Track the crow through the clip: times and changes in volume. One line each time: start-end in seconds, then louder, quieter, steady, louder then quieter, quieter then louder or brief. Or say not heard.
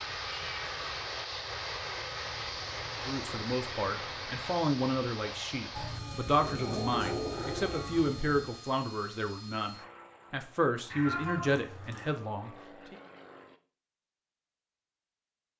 not heard.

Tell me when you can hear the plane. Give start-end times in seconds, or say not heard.
0.0-13.6.